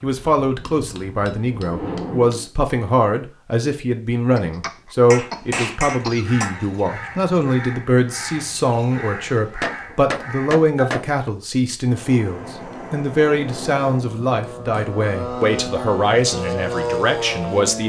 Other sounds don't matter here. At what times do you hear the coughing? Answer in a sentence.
You can hear the coughing from 4.3 to 6.2 s.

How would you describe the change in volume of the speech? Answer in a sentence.
The loudness of the speech stays about the same.